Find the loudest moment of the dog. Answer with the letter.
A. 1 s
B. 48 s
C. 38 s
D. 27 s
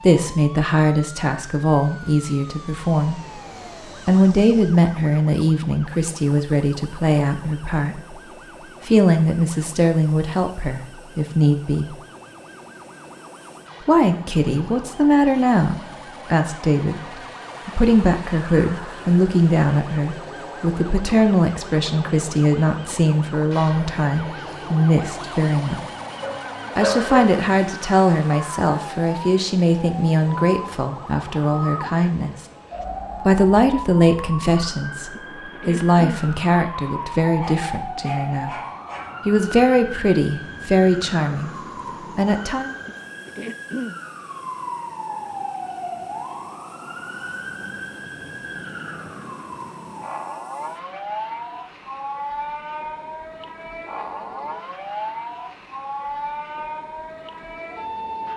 D.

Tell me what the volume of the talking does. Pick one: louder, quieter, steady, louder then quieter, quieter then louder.
steady.